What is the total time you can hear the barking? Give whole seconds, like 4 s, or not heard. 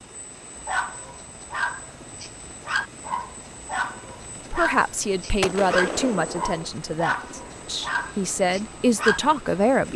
9 s.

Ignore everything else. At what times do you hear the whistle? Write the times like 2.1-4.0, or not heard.
not heard.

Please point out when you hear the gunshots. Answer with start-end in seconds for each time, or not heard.
5.4-6.7.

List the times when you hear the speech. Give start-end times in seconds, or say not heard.
4.5-9.9.